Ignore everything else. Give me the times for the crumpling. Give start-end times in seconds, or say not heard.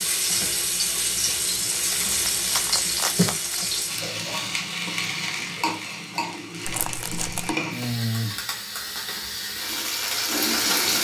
1.7-3.6, 6.7-7.5.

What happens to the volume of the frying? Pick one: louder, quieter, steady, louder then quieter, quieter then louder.
steady.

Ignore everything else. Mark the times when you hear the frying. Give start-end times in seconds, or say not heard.
0.0-11.0.